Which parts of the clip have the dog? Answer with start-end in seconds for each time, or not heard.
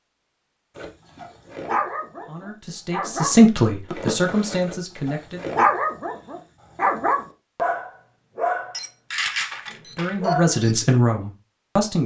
0.8-10.8.